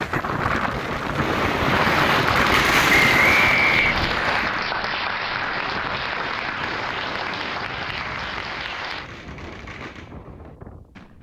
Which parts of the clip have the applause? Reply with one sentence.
You can hear the applause from 1.6 to 9.1 s.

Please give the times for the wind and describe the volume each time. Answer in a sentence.
The wind can be heard from 0.0 to 11.1 s, getting quieter.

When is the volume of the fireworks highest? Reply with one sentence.
The volume of the fireworks peaks at 3 seconds.